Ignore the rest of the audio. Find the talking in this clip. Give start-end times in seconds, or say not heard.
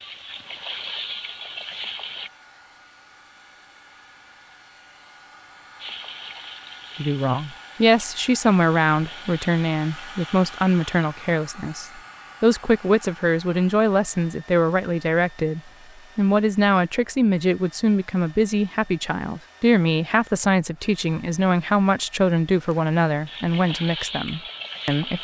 7.0-25.2.